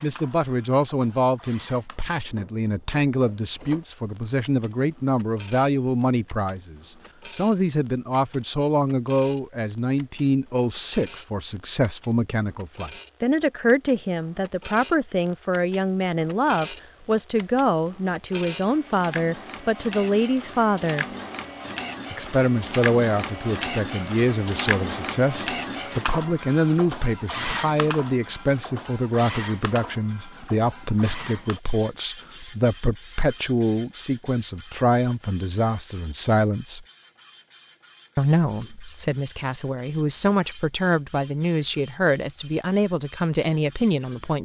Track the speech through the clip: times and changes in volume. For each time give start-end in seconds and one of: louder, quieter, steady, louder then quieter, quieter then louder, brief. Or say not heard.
0.0-21.1 steady
22.1-36.9 steady
38.1-44.4 louder.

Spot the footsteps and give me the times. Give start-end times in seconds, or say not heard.
not heard.